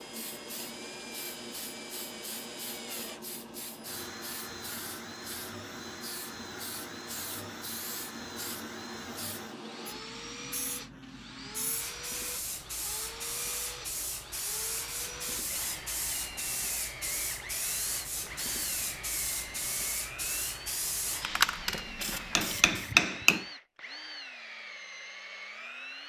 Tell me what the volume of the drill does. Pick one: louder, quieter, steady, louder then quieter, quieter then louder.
steady.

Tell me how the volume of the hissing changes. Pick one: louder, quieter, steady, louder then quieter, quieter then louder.
louder.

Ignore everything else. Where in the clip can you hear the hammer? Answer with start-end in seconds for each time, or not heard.
22.0-23.4.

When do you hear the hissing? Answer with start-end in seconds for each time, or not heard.
0.0-22.9.